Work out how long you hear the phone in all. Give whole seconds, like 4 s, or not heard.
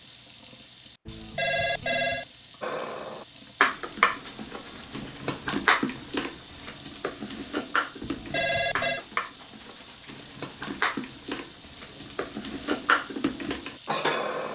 2 s.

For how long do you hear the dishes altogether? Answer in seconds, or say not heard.
12 s.